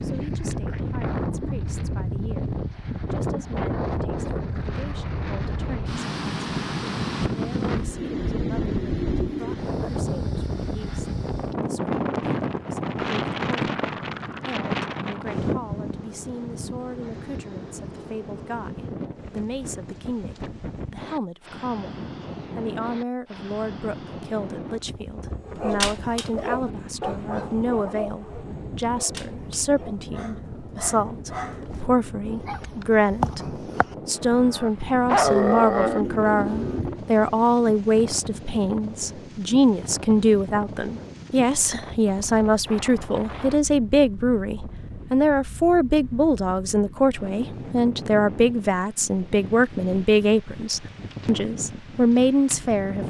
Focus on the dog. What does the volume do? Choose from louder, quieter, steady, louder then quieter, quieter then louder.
quieter then louder.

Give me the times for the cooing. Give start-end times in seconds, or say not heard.
7.8-9.6, 35.6-37.0.